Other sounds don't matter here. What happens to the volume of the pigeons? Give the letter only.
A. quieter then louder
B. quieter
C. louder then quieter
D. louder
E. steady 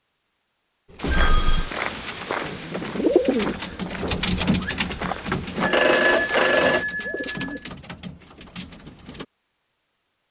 C.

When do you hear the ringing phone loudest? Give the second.
6 s.